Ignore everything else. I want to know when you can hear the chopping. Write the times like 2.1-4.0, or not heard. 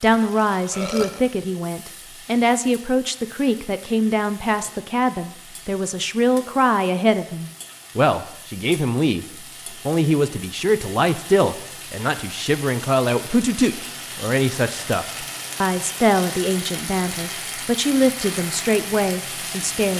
not heard.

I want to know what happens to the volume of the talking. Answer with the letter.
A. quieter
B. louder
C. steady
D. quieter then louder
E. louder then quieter
C.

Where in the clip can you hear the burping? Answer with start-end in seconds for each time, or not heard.
0.7-1.2.